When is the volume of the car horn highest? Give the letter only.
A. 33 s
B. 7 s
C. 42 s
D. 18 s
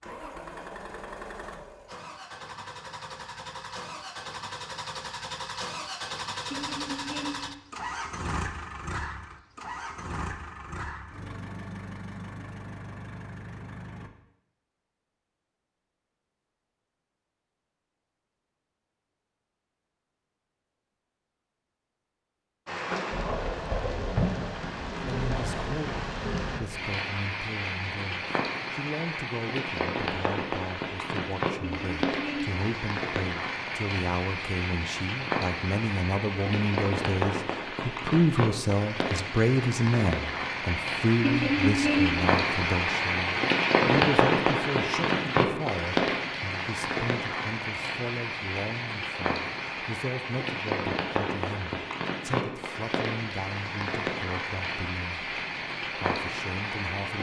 C.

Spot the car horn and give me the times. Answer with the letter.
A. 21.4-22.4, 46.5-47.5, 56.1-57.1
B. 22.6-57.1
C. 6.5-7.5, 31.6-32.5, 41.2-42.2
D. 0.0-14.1
C.